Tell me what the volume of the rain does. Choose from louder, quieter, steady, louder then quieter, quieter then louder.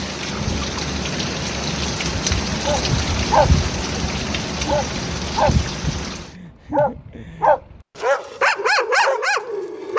steady.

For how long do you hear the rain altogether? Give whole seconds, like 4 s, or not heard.
6 s.